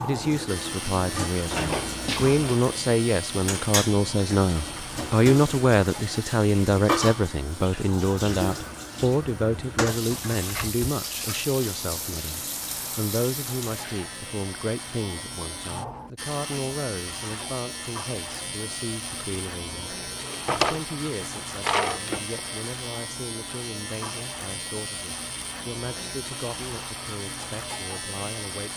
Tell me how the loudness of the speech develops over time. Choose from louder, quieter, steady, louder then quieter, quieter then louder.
quieter.